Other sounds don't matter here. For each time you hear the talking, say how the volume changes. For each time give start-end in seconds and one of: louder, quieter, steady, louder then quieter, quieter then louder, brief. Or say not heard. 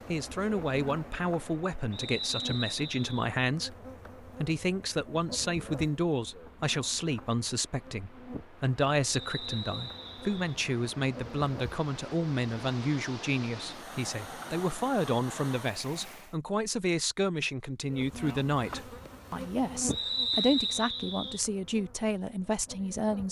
0.1-23.2 steady.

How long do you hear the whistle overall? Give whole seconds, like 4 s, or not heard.
4 s.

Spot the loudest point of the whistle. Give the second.
20 s.